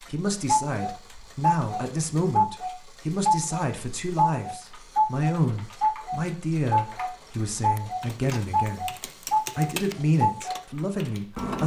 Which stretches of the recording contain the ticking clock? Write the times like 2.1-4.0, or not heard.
0.0-11.6.